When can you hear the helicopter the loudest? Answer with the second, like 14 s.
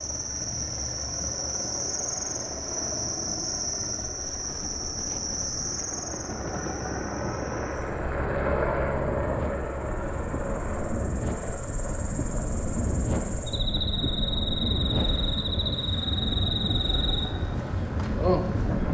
9 s.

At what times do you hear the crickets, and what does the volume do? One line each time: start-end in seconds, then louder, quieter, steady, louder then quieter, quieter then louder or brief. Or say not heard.
0.0-18.8 quieter then louder.